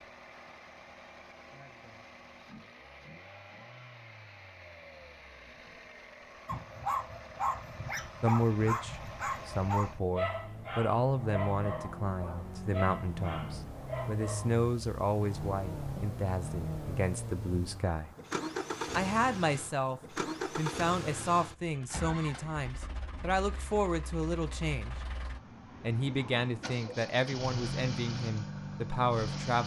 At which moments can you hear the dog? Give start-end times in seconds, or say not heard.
6.5-14.6.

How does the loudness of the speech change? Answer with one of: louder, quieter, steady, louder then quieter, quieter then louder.
steady.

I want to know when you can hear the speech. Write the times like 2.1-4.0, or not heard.
8.2-18.1, 18.9-24.9, 25.8-29.6.